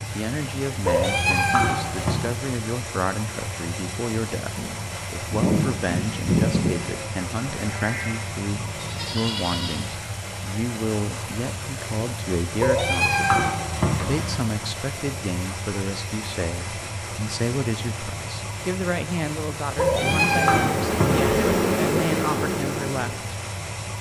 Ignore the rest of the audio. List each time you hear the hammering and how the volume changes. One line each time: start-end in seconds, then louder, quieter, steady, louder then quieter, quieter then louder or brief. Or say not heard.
not heard.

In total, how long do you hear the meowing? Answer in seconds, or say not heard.
5 s.